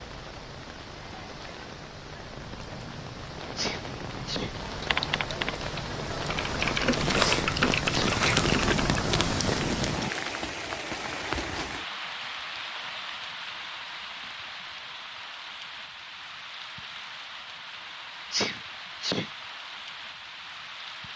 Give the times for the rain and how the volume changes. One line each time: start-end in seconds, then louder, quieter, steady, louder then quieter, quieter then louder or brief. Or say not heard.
0.0-21.1 louder then quieter.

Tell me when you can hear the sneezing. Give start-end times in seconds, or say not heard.
3.5-4.6, 7.2-8.2, 18.3-19.4.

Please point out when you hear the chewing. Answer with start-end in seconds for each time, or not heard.
7.0-10.1.